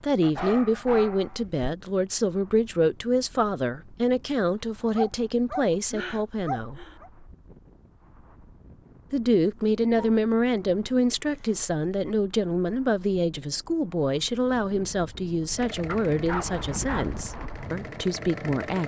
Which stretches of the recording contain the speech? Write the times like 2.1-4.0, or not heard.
0.0-6.8, 9.1-18.8.